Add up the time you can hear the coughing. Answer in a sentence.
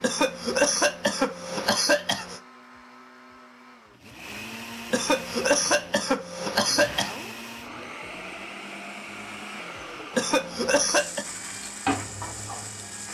The coughing can be heard for 6 seconds in total.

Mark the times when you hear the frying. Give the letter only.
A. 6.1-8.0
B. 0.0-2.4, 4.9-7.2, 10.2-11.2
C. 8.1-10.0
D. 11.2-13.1
D.